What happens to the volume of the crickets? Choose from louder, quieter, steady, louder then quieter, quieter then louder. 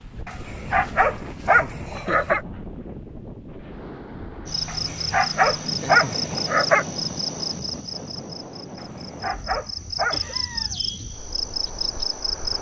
quieter then louder.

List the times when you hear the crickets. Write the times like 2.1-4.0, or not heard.
4.5-12.5.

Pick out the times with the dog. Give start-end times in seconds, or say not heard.
0.2-2.4, 4.7-6.8, 8.8-10.2.